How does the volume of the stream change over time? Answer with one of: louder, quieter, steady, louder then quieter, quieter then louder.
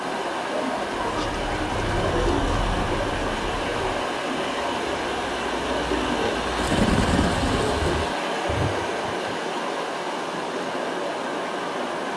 steady.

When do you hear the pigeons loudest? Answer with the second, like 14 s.
7 s.